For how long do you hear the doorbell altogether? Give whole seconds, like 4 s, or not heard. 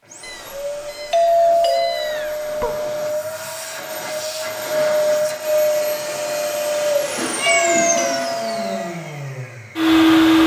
2 s.